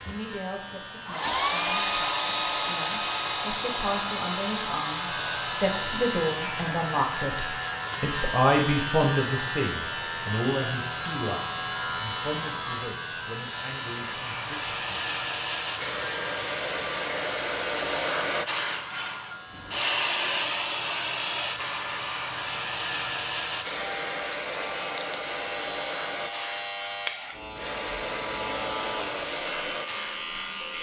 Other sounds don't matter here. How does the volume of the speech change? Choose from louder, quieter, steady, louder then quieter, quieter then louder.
louder then quieter.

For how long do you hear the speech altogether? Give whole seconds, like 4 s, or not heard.
15 s.